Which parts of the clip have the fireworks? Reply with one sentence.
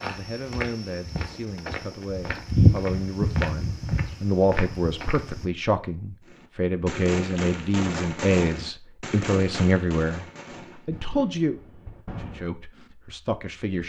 You can hear the fireworks from 6.2 to 12.5 s.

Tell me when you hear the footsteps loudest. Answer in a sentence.
The loudest moment of the footsteps is at 3 seconds.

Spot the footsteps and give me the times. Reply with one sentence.
The footsteps can be heard from 0.0 to 5.5 s.